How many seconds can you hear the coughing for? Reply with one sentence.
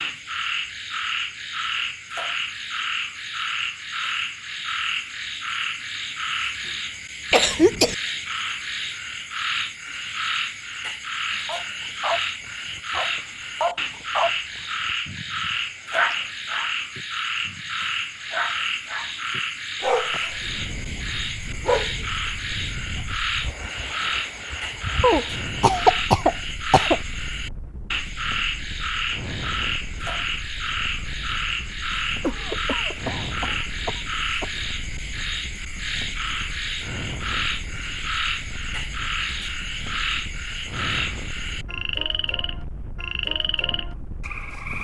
The coughing can be heard for 5 seconds in total.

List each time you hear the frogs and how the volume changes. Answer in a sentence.
You can hear the frogs from 0.0 to 44.7 s, at a steady volume.